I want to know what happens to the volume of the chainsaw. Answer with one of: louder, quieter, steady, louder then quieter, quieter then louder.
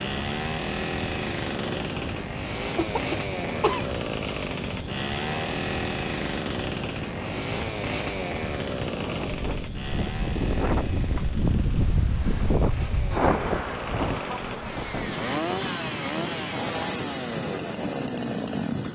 quieter then louder.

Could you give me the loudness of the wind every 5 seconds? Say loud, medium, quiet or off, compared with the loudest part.
medium, medium, loud, medium.